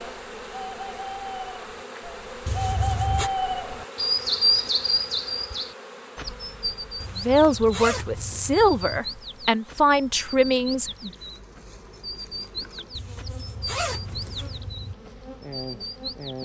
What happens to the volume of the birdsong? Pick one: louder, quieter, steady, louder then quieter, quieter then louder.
louder then quieter.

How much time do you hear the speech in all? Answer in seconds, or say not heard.
4 s.